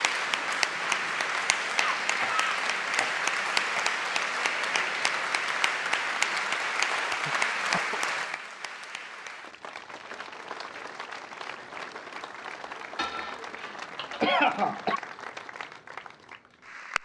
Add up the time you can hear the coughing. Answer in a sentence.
The coughing can be heard for 5 seconds in total.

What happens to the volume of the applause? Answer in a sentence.
The loudness of the applause goes down.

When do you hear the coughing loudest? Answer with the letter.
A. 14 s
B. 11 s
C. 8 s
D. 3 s
A.